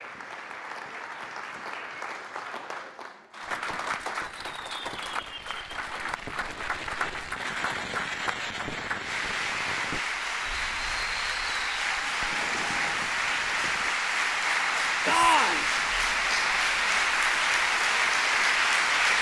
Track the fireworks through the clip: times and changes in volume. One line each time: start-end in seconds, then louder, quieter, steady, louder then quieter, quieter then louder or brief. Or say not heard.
3.4-13.9 louder then quieter.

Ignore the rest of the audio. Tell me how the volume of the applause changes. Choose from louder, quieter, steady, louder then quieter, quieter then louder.
louder.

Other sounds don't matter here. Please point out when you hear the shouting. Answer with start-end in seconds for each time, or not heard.
15.1-15.7.